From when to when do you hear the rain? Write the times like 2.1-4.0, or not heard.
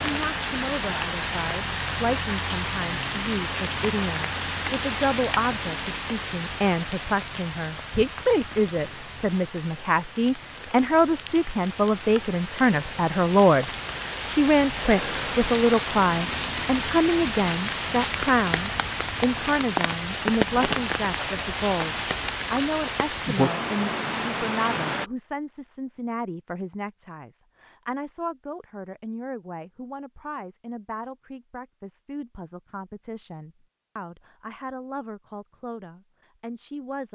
0.0-25.1.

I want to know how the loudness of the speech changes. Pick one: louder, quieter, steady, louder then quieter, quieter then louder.
louder then quieter.